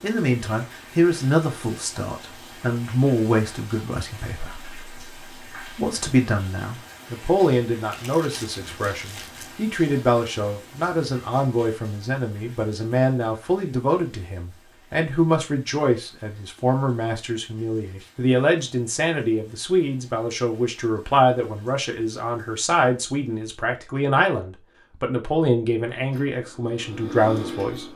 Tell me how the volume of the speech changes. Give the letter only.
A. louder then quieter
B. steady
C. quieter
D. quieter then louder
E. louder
B.